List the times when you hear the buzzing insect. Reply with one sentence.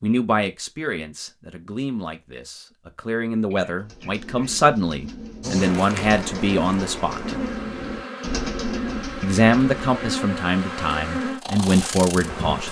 The buzzing insect can be heard from 5.4 to 12.6 s.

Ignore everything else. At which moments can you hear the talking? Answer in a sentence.
You can hear the talking from 0.0 to 7.3 s and from 9.2 to 12.6 s.